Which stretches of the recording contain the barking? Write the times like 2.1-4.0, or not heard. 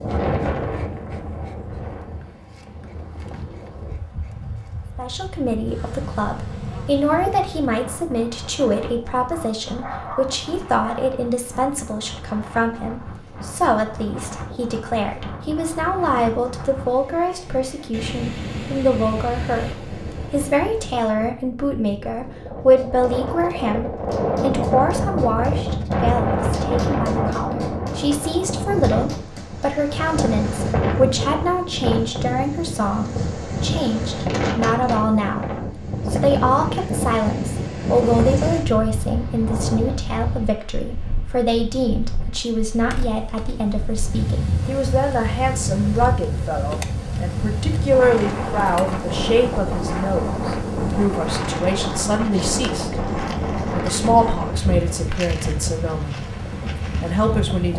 9.3-11.2.